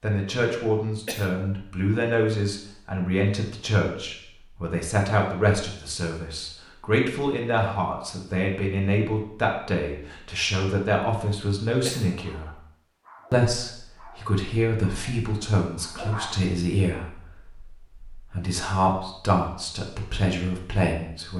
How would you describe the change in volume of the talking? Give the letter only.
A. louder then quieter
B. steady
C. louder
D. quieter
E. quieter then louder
B.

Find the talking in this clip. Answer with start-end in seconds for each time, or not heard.
0.0-12.6, 13.3-21.3.